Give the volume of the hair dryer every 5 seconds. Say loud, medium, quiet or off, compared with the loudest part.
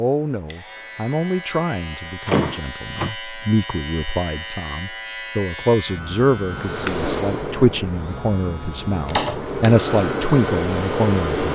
off, medium, loud.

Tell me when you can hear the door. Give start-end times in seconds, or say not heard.
2.2-3.1, 9.0-9.4.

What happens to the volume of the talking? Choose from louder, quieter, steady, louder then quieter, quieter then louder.
louder.